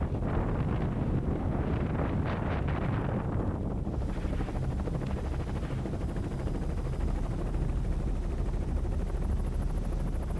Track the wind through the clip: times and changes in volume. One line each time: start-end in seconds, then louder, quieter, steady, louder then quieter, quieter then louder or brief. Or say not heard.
0.0-10.3 quieter.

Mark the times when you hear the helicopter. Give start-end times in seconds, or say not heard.
0.0-10.3.